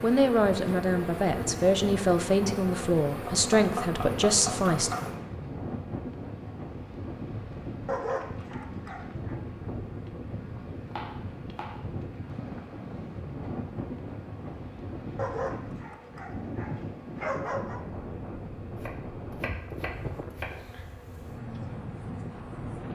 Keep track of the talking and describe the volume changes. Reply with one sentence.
The volume of the talking stays about the same.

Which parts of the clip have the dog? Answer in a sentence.
The dog can be heard from 7.8 to 9.4 s and from 15.2 to 17.8 s.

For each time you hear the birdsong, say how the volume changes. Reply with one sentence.
You can't hear the birdsong here.